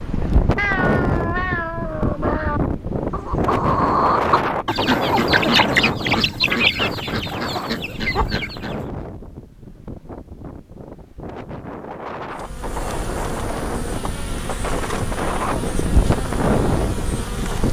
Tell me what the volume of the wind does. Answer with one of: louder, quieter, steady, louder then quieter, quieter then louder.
quieter then louder.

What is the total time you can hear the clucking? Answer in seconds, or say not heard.
6 s.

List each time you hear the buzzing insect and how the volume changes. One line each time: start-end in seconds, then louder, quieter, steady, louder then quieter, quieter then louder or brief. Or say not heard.
12.3-17.6 steady.